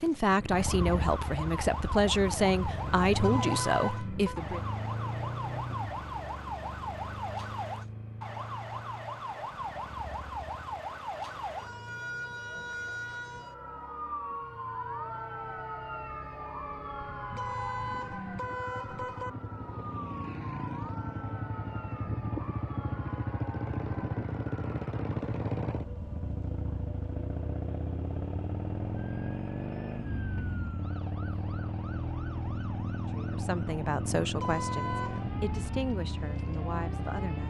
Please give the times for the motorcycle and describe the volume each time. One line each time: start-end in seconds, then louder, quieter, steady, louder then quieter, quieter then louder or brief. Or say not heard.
0.0-37.4 quieter then louder.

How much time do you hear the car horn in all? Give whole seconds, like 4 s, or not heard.
4 s.